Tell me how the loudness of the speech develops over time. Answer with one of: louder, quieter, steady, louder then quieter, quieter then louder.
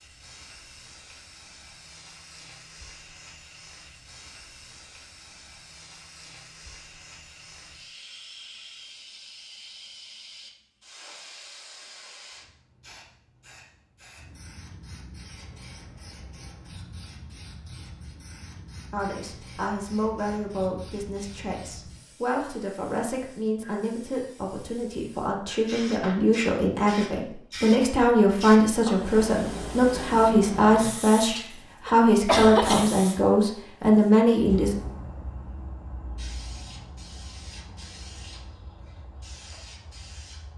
louder.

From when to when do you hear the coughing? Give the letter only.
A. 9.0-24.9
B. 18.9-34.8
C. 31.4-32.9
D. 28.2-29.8
C.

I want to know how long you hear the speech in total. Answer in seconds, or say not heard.
16 s.